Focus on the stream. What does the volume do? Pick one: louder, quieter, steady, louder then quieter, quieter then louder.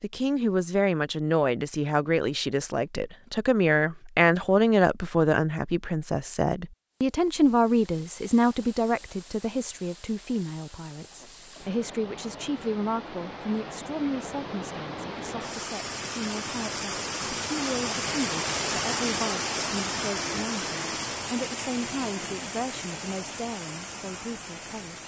louder then quieter.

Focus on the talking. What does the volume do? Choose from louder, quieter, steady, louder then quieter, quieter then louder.
quieter.